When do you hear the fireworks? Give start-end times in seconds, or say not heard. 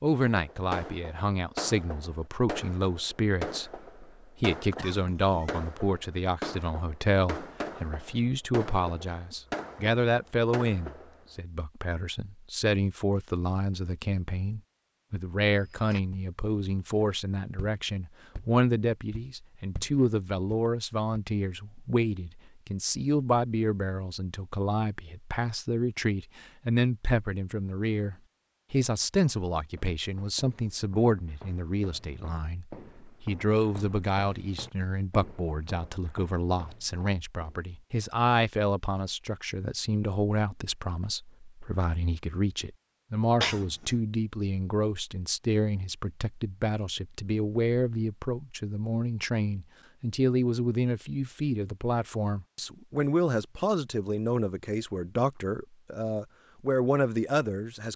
0.2-11.2.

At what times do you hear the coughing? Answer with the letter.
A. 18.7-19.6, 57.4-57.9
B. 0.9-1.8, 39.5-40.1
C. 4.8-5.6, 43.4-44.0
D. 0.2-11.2
C.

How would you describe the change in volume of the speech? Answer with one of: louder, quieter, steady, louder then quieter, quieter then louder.
steady.